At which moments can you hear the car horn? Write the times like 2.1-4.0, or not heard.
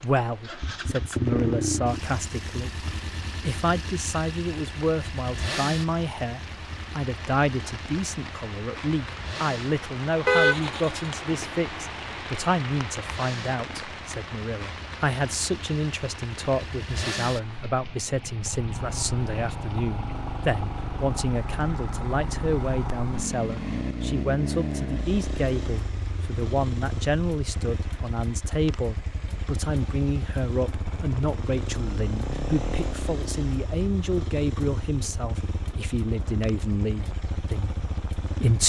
10.2-11.1.